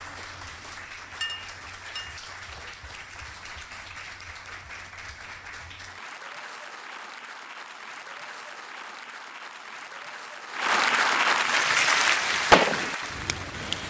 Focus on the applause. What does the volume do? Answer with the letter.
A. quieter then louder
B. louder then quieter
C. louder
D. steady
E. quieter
C.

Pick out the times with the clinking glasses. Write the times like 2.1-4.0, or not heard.
1.2-2.2.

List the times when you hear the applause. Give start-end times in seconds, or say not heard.
0.0-13.8.